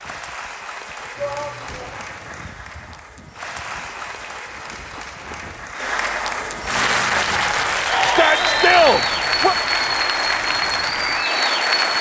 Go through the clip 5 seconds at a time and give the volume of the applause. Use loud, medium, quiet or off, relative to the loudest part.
quiet, loud, loud.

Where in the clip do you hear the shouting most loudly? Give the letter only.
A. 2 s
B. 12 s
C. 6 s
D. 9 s
D.